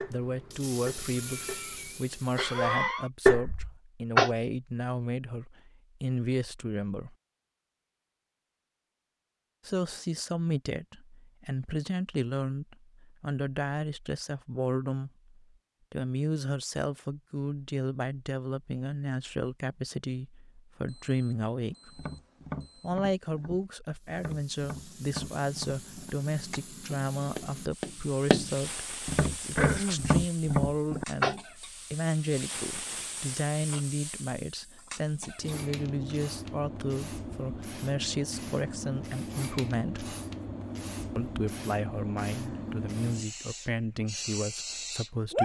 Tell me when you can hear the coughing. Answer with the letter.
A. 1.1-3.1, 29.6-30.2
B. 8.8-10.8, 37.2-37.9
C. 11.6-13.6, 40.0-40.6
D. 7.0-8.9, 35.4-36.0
A.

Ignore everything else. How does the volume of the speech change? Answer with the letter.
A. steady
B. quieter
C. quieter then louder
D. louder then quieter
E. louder
A.